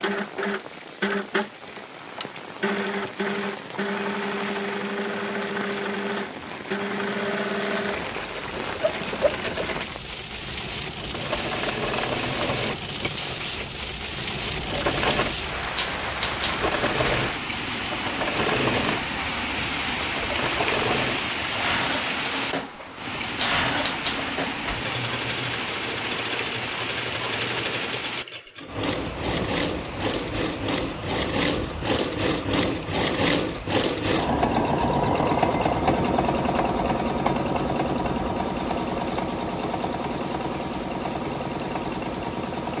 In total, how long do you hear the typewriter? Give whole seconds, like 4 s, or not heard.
3 s.